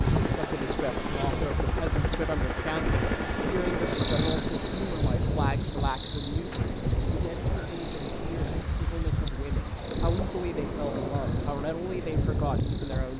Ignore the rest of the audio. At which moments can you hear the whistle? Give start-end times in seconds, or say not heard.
not heard.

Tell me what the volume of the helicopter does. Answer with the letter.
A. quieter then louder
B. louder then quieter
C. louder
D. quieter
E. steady
E.